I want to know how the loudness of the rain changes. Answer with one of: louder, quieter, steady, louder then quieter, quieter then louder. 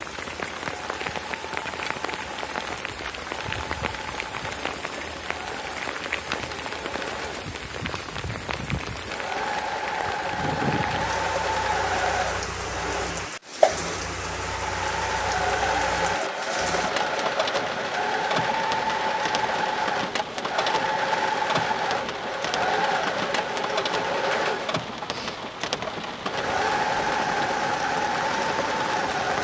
steady.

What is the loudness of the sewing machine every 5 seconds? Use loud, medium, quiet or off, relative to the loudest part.
quiet, medium, loud, loud, loud, loud.